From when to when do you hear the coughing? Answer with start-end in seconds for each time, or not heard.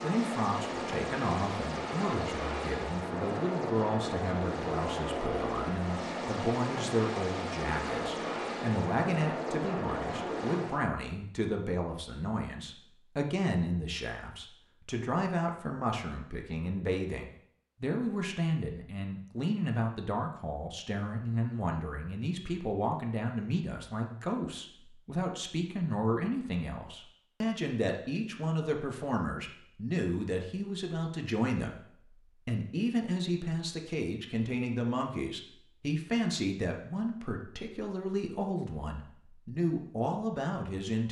not heard.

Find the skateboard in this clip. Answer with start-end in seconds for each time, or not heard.
not heard.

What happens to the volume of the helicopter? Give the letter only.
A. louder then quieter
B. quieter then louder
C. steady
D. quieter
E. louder
C.